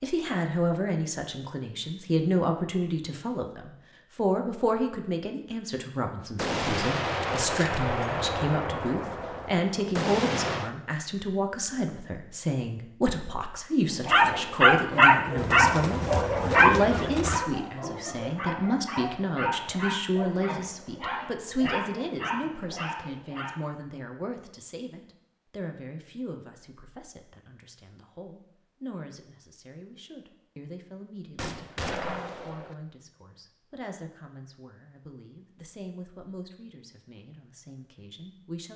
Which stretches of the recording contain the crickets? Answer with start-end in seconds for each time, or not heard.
not heard.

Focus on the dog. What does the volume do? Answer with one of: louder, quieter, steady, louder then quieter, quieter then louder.
quieter.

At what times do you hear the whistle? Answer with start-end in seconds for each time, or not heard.
not heard.